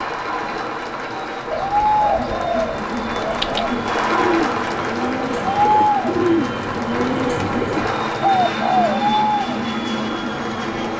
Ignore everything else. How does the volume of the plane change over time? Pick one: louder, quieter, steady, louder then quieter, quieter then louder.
louder.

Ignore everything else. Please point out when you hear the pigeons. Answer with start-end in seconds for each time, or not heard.
1.5-8.9.